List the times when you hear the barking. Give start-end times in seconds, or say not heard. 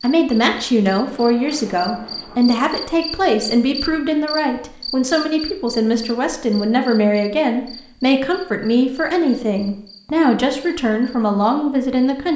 not heard.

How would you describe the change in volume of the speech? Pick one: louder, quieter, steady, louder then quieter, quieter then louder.
steady.